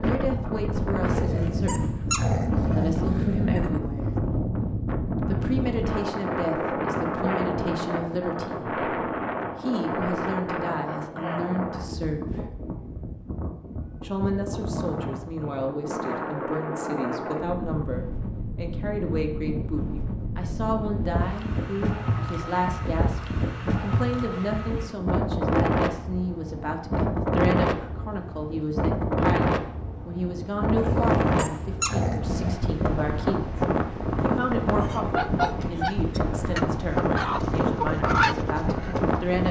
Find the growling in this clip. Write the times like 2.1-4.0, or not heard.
1.1-3.8, 30.8-32.6.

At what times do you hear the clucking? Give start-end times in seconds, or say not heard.
34.6-39.1.